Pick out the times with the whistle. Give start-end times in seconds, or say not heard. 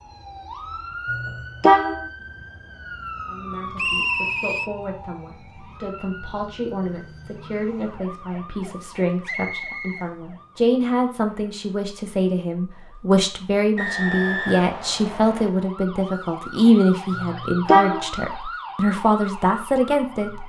3.8-4.7, 9.2-10.1, 13.8-15.5.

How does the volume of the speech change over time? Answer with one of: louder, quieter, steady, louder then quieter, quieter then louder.
louder.